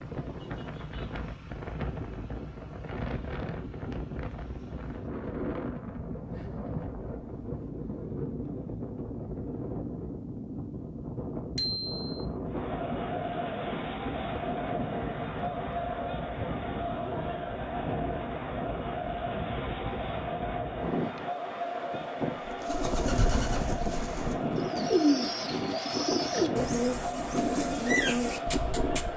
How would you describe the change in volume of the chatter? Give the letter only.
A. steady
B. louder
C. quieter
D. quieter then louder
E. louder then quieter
A.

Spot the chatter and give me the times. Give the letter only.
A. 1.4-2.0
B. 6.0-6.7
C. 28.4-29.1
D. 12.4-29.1
D.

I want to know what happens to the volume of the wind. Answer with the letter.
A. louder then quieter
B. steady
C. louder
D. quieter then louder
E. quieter
B.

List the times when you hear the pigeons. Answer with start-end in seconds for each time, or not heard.
22.4-29.1.